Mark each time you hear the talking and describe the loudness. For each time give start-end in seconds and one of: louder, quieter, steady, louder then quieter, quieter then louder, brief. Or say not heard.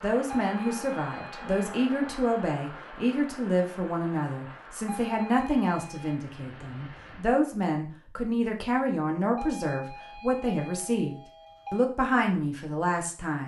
0.0-13.4 steady.